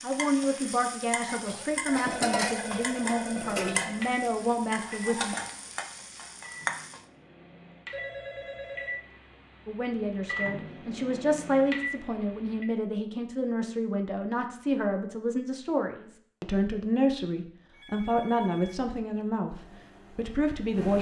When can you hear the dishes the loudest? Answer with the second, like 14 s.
2 s.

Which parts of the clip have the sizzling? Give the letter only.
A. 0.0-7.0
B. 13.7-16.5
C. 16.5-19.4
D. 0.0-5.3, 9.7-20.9
A.